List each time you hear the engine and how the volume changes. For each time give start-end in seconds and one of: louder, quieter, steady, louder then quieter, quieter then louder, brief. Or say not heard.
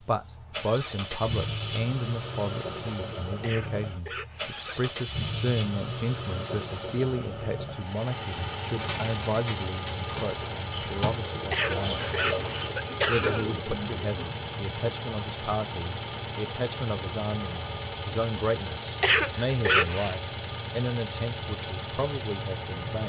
0.0-23.0 steady.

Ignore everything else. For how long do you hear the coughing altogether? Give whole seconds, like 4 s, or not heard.
4 s.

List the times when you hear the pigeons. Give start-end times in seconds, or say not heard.
8.8-14.2.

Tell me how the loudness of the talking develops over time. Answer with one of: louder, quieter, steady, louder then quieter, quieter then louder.
steady.